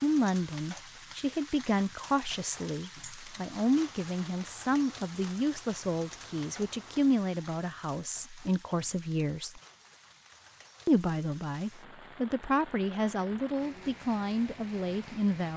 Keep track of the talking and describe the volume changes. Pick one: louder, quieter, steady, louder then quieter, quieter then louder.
steady.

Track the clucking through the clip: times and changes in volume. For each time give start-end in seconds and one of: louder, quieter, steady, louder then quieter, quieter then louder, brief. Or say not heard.
not heard.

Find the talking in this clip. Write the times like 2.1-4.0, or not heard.
0.0-9.6, 10.8-15.5.